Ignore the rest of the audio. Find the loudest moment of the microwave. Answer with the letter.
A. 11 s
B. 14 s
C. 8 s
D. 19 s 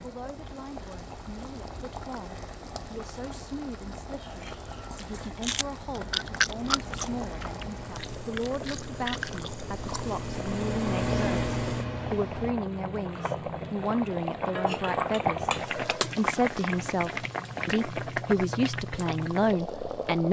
A.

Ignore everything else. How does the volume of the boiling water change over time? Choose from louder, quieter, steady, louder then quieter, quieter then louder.
louder.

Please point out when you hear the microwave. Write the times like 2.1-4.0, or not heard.
6.6-12.6.